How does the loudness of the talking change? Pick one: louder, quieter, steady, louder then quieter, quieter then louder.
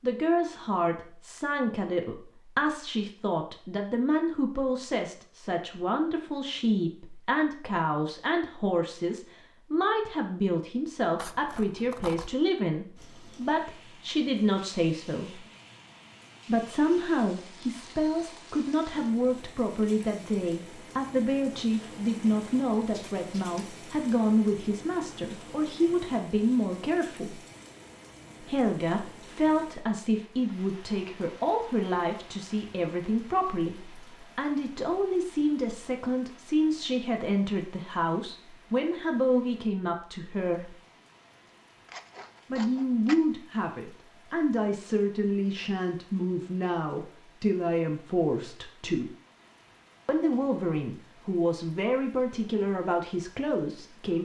steady.